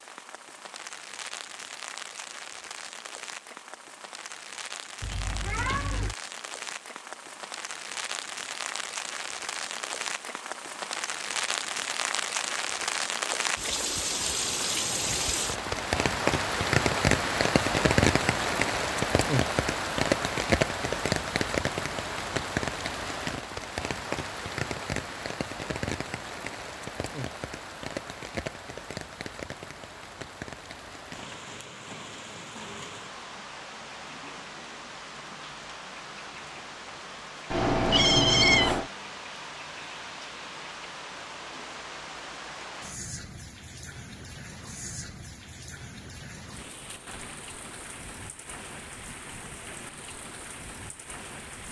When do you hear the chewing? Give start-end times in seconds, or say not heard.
not heard.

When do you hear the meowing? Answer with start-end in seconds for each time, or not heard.
5.0-6.2, 37.5-38.9.